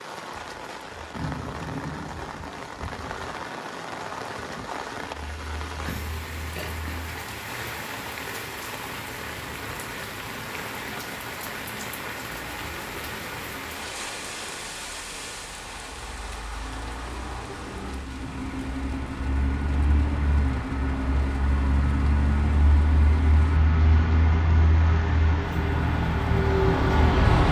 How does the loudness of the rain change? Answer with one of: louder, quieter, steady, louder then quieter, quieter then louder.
quieter.